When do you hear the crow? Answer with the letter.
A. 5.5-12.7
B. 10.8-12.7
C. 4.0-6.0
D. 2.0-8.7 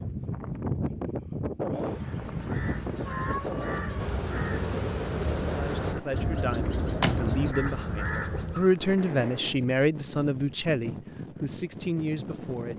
D.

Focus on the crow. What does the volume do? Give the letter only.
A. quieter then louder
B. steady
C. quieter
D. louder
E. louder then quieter
D.